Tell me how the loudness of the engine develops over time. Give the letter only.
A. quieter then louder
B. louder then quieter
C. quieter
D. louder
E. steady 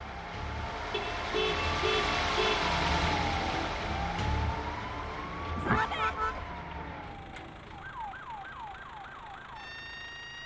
C.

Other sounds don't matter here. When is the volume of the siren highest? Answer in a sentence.
The volume of the siren peaks at 3 seconds.